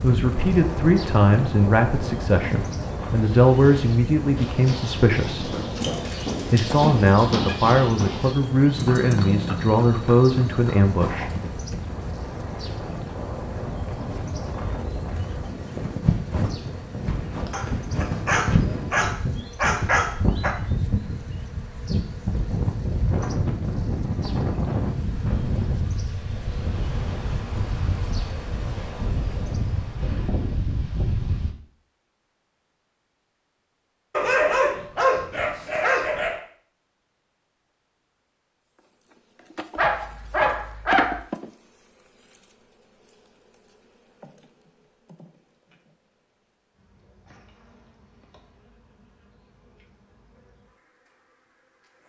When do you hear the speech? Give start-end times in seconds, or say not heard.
0.0-5.5, 6.5-11.3.